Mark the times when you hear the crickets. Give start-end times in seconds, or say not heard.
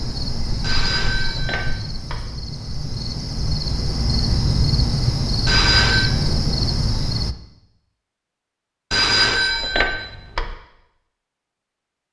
0.0-7.3.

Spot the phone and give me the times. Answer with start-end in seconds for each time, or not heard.
0.6-2.2, 5.5-6.2, 8.9-10.6.